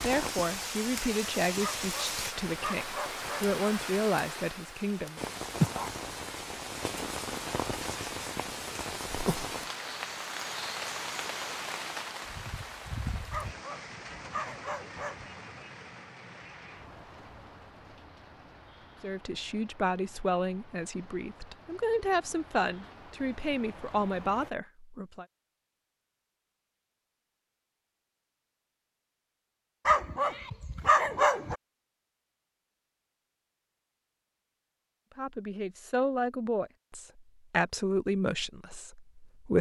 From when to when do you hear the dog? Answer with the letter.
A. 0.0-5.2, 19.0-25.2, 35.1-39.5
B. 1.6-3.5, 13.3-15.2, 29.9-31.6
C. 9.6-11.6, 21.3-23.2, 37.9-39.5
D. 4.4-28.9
B.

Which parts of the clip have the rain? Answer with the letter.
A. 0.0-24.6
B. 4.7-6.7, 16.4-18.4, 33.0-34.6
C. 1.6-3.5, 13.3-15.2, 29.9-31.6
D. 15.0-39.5
A.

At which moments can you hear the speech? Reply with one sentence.
You can hear the speech from 0.0 to 5.2 s, from 19.0 to 25.2 s and from 35.1 to 39.5 s.